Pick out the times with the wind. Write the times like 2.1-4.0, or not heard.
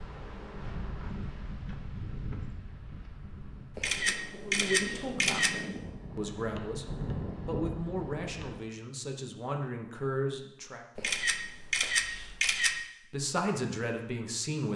0.0-8.6.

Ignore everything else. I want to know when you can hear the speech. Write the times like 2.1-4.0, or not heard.
4.5-10.8, 13.1-14.7.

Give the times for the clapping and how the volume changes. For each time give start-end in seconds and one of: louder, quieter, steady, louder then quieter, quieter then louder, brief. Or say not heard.
not heard.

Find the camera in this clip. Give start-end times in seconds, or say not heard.
3.8-5.6, 10.9-12.8.